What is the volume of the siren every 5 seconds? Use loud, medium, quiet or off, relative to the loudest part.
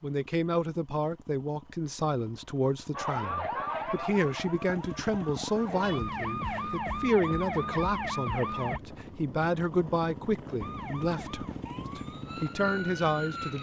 loud, loud, medium.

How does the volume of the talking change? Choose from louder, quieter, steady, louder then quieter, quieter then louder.
steady.